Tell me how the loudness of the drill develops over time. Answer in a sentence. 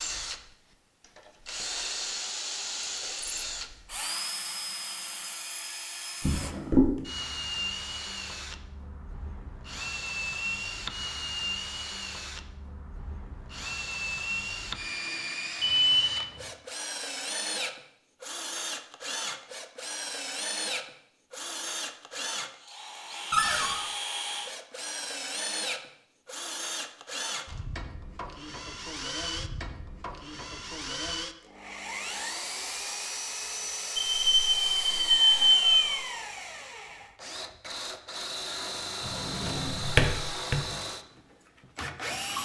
The loudness of the drill stays about the same.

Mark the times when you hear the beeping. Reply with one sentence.
The beeping can be heard from 15.6 to 16.4 s and from 34.0 to 36.0 s.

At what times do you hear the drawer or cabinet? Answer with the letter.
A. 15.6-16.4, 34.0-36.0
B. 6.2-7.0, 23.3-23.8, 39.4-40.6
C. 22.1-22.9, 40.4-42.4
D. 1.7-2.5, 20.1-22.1
B.